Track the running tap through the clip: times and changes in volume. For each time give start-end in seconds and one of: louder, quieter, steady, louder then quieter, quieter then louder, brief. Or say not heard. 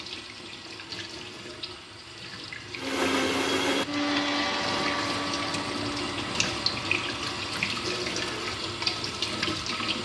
0.0-10.0 louder.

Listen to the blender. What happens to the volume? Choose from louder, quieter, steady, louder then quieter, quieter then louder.
quieter.